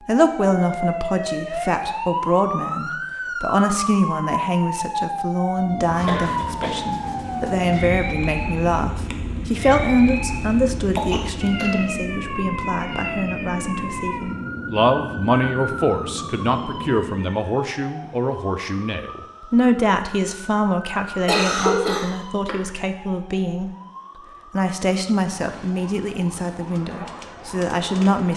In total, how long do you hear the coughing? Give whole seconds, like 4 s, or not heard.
3 s.